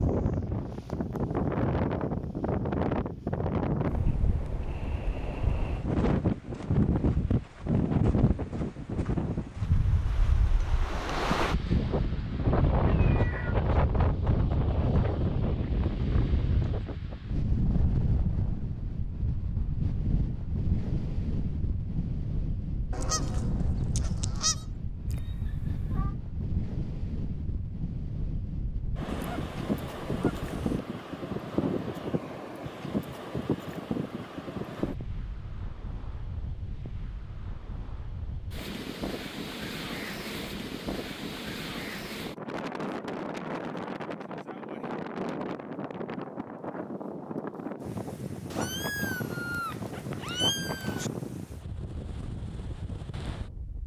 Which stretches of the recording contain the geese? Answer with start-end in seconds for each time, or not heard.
22.9-24.6, 29.1-30.8.